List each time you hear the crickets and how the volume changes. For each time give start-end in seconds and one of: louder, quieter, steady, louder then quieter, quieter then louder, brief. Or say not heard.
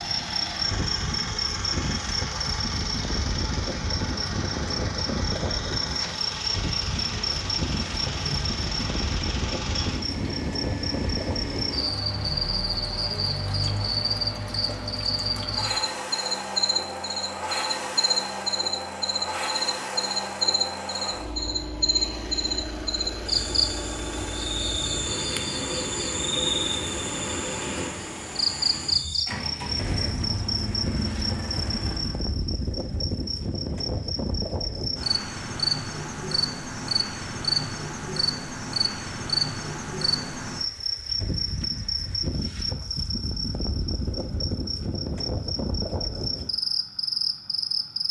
0.0-48.0 steady.